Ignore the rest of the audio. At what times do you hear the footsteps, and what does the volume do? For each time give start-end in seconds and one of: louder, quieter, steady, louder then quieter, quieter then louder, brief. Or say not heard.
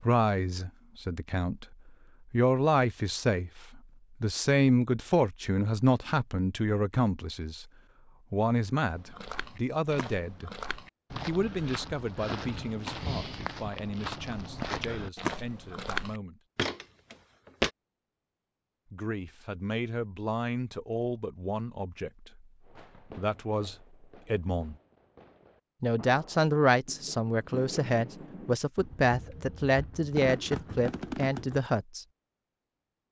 8.9-17.7 louder.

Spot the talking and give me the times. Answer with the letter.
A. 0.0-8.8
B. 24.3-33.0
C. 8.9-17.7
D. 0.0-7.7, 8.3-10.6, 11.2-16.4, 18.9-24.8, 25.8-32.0
D.